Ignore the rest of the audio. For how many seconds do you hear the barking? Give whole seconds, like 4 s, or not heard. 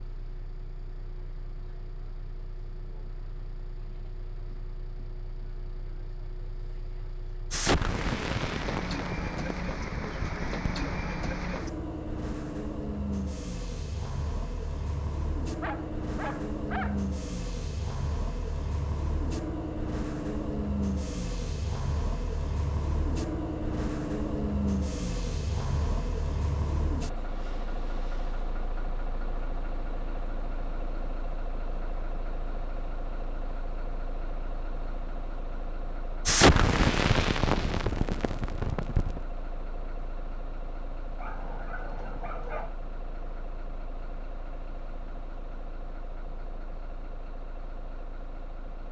3 s.